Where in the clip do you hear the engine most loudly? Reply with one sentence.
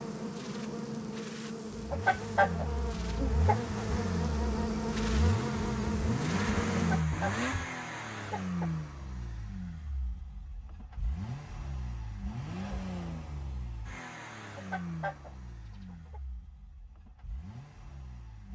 The volume of the engine peaks at 7 seconds.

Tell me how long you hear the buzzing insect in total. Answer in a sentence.
You can hear the buzzing insect for 7 seconds altogether.